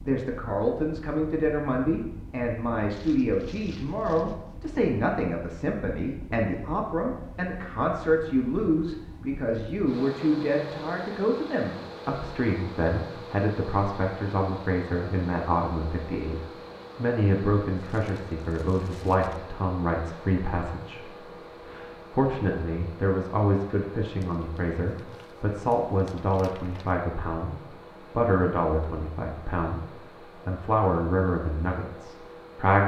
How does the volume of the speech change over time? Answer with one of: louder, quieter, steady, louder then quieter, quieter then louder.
steady.